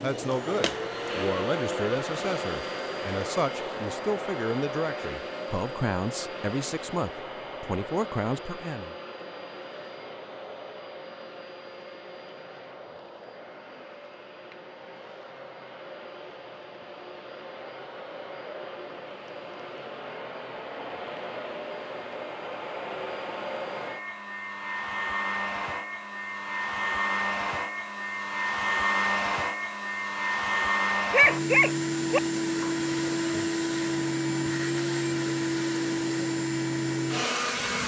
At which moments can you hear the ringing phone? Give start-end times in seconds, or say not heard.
not heard.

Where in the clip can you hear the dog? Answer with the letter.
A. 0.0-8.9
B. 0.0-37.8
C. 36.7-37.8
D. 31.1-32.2
D.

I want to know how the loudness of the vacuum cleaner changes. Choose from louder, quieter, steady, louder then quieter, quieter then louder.
quieter then louder.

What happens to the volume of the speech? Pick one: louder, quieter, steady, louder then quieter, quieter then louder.
steady.